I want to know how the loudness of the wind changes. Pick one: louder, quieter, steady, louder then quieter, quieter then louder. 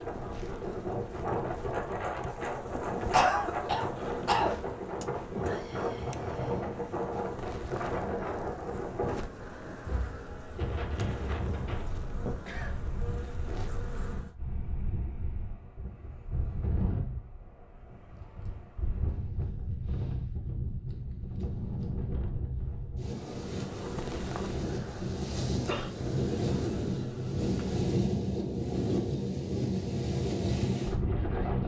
quieter then louder.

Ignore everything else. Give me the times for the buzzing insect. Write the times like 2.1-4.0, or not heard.
0.0-14.3, 23.0-27.8.